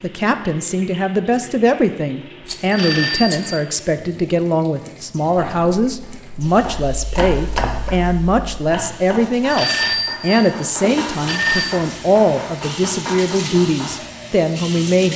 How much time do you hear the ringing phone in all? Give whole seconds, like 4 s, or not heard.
3 s.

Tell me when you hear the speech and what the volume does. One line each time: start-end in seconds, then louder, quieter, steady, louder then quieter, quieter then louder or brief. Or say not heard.
0.0-15.1 steady.